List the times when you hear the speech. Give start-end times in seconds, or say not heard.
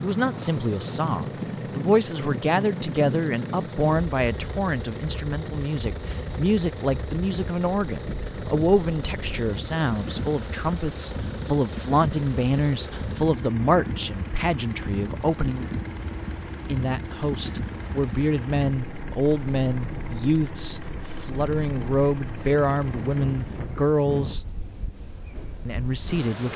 0.0-15.7, 16.6-24.4, 25.6-26.5.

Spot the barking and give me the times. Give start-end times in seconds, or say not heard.
not heard.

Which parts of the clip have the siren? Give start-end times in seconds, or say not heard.
not heard.